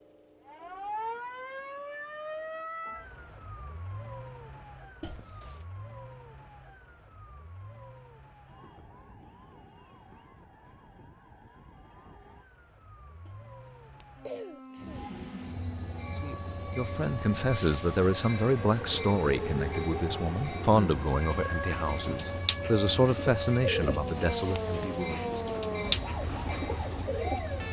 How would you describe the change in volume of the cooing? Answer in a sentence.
The loudness of the cooing goes up, then down.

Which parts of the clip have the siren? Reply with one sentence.
You can hear the siren from 0.0 to 27.6 s.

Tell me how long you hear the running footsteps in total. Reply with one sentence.
The running footsteps can't be heard in this clip.